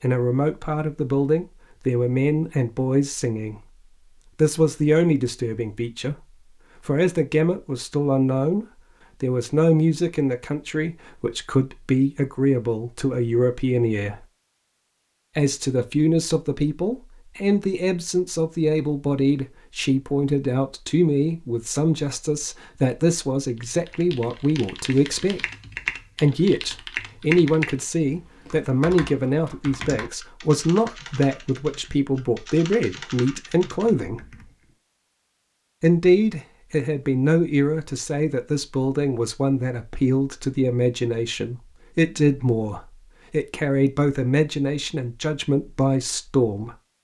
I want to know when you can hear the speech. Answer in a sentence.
You can hear the speech from 0.0 to 3.5 s, from 4.3 to 6.2 s, from 6.8 to 14.2 s, from 15.3 to 25.4 s, from 26.2 to 34.2 s and from 35.8 to 46.8 s.